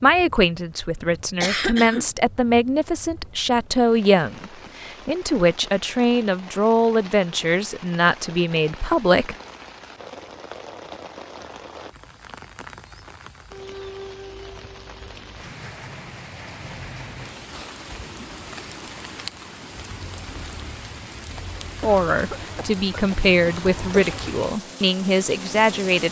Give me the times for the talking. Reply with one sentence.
You can hear the talking from 0.0 to 9.3 s and from 21.8 to 26.0 s.